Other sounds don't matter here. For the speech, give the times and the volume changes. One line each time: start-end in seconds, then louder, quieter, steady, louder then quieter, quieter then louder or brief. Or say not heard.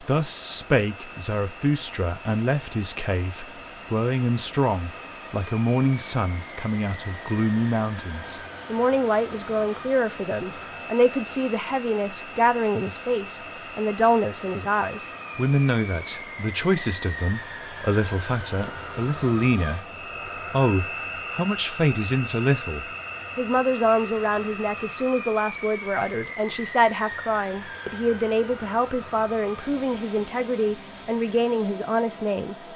0.0-19.9 steady
20.5-32.5 steady.